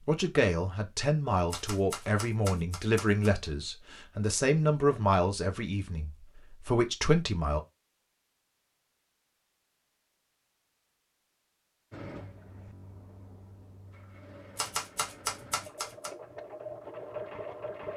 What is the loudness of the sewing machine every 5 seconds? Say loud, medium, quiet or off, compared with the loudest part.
off, off, medium, loud.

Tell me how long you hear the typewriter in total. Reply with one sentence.
The typewriter can be heard for 3 seconds in total.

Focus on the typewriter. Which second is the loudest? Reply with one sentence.
The volume of the typewriter peaks at 15 seconds.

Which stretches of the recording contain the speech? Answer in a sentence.
You can hear the speech from 0.1 to 7.6 s.